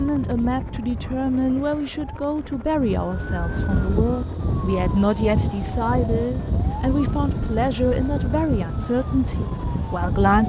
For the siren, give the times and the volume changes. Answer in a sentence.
The siren can be heard from 0.0 to 10.4 s, getting louder.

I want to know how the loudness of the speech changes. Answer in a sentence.
The volume of the speech stays about the same.